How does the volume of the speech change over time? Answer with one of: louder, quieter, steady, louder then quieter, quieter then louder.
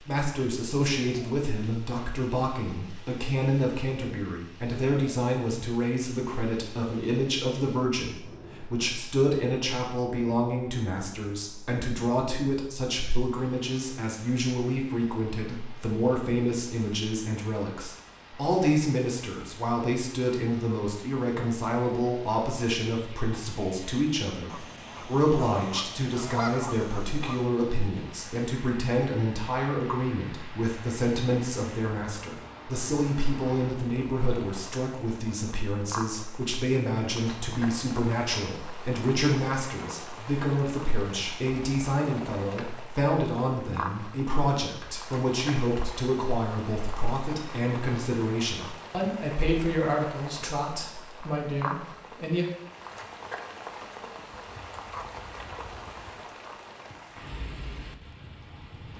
steady.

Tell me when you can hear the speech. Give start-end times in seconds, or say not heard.
0.1-52.5.